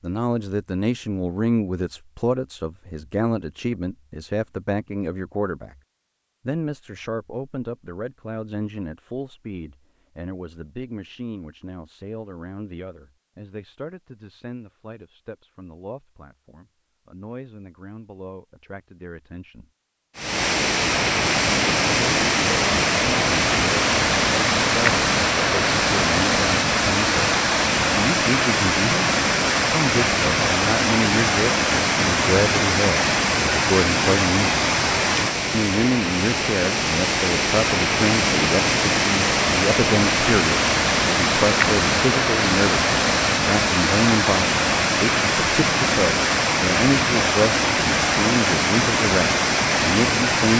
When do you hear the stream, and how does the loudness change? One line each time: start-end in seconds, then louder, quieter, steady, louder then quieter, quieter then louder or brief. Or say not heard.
20.1-50.5 steady.